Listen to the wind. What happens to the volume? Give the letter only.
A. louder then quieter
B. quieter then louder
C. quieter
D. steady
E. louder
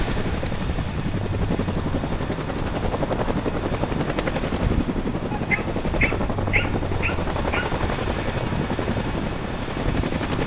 D.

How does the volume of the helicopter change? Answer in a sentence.
The loudness of the helicopter stays about the same.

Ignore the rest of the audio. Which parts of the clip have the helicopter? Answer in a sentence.
You can hear the helicopter from 0.0 to 10.4 s.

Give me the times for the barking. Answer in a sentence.
The barking can be heard from 5.3 to 7.8 s.